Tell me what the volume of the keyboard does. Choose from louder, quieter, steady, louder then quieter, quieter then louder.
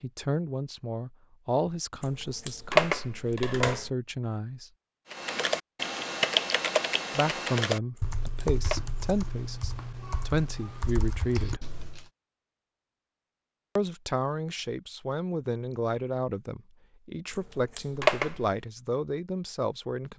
quieter.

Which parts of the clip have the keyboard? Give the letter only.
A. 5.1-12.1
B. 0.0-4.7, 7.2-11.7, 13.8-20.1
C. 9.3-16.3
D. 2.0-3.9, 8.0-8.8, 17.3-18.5
A.